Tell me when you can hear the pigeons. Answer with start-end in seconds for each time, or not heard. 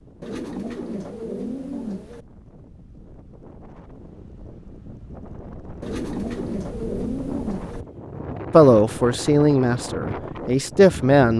0.2-2.2, 5.8-7.8.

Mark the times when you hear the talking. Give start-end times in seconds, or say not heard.
8.5-11.3.